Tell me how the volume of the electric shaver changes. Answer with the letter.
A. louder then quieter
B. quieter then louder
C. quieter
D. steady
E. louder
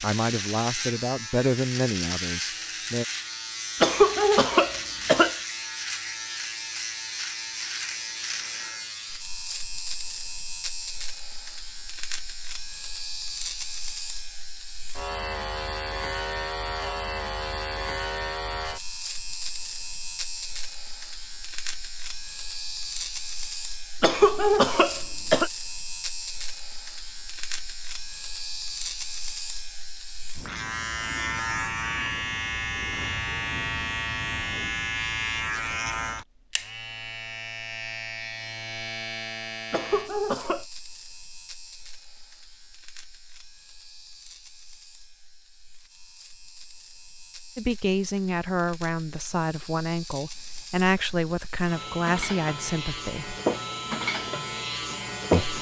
D.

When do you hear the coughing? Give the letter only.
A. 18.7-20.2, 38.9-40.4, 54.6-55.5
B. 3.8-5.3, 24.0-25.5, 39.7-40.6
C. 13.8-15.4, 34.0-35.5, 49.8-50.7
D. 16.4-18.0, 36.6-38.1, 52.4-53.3
B.